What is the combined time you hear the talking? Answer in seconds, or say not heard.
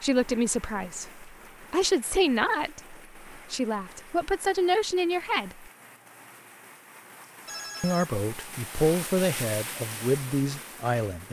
9 s.